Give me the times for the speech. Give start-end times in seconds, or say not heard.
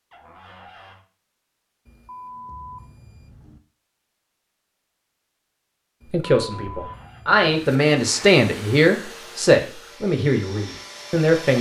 6.1-11.5.